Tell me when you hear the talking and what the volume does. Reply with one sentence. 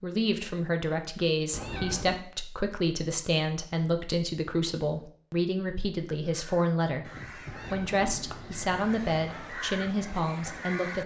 You can hear the talking from 0.0 to 11.0 s, at a steady volume.